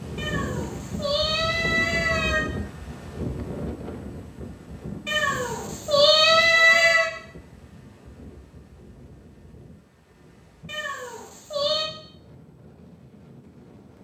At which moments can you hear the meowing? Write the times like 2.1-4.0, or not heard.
0.1-2.5, 5.0-7.1, 10.7-11.9.